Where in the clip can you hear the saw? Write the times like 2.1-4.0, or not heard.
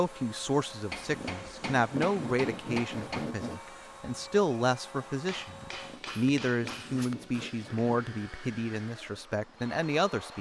0.9-3.6, 5.7-7.9.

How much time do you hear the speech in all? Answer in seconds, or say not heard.
10 s.